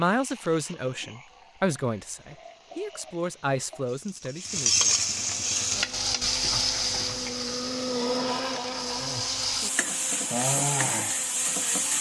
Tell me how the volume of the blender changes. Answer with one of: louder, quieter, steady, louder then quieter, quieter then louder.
louder then quieter.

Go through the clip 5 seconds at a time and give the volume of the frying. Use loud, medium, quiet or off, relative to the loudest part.
medium, loud, loud.